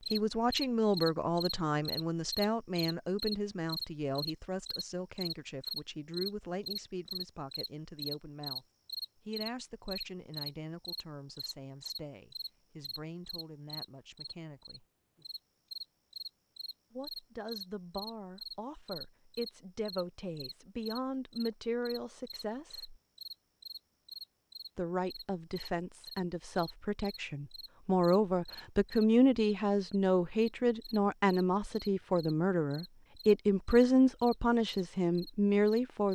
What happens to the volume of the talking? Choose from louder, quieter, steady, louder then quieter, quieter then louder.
quieter then louder.